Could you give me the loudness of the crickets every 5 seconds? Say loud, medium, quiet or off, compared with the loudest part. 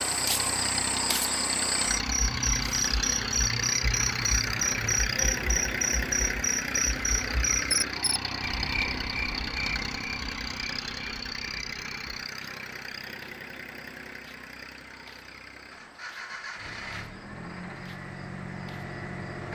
loud, loud, quiet, quiet.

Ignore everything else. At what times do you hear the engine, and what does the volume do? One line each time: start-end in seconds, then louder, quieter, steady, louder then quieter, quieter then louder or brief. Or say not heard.
0.0-19.4 quieter.